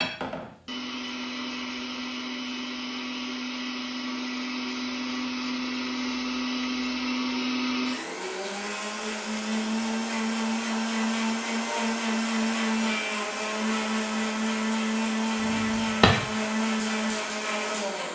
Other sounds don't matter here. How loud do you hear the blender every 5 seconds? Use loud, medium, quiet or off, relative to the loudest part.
medium, loud, loud, loud.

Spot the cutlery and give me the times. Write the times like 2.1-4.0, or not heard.
not heard.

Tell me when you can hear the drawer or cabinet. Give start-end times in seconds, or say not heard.
15.4-16.2.